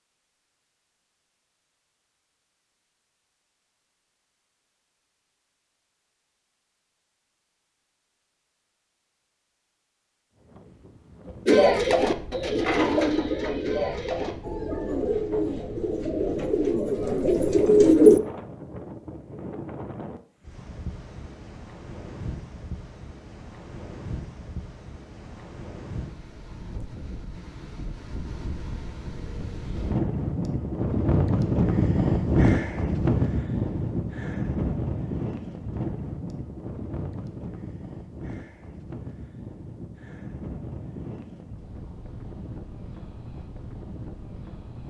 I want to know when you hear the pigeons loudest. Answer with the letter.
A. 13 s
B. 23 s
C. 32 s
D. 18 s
D.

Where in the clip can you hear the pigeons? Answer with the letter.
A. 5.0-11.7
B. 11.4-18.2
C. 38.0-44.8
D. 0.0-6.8
B.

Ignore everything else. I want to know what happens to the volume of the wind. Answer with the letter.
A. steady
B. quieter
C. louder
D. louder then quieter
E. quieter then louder
D.